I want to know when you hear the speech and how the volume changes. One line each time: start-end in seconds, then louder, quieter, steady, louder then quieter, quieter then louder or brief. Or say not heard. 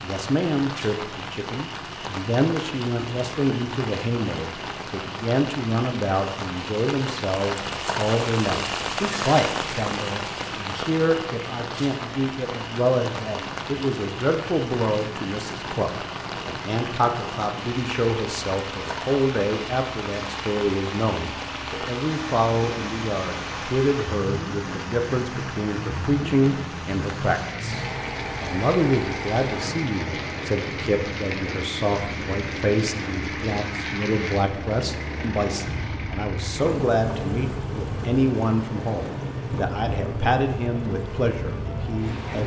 0.0-42.4 steady.